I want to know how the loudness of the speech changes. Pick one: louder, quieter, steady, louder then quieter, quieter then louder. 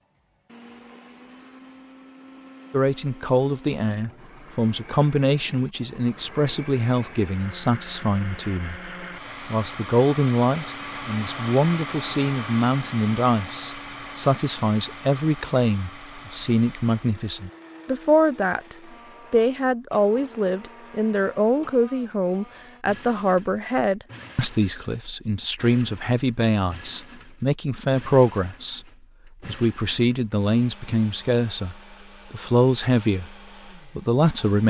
steady.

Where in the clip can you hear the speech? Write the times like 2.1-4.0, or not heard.
2.7-28.9, 29.4-34.6.